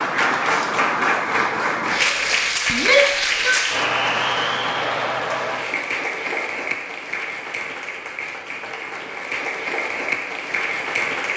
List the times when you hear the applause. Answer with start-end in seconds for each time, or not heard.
0.0-11.3.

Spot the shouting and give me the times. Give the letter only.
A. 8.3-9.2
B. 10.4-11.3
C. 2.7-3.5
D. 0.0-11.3
C.